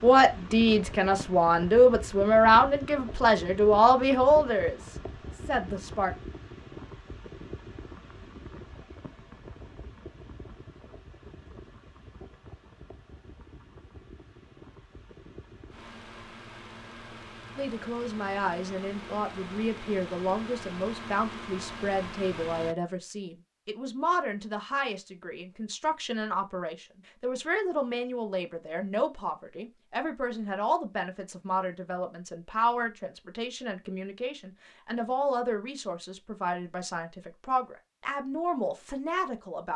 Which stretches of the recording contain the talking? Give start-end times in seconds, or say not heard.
0.0-6.1, 17.6-39.7.